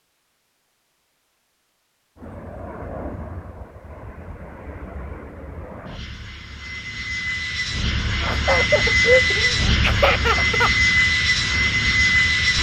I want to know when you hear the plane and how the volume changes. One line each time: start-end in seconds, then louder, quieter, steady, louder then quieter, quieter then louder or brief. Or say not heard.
2.1-12.5 louder.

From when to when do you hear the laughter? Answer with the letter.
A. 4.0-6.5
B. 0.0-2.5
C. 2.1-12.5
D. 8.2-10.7
D.